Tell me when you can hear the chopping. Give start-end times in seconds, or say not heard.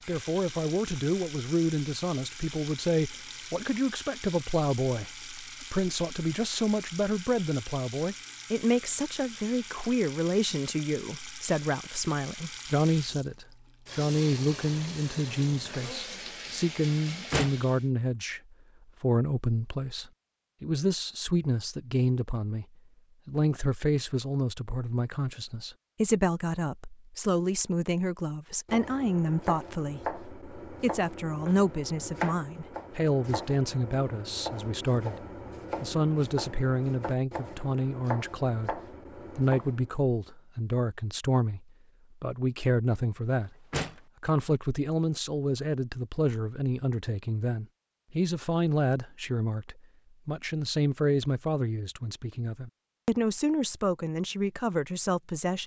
28.6-39.9.